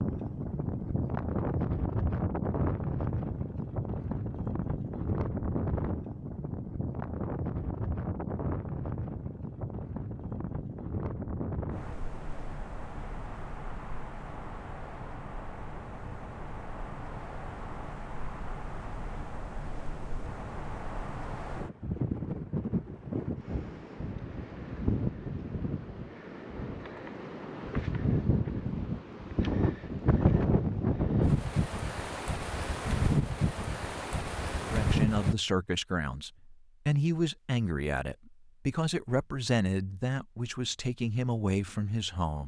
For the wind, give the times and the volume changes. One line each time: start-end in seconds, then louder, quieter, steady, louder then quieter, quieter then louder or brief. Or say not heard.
0.0-35.4 quieter then louder.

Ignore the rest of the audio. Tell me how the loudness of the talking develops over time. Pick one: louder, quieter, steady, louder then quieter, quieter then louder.
steady.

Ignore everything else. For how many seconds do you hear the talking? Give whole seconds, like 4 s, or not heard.
8 s.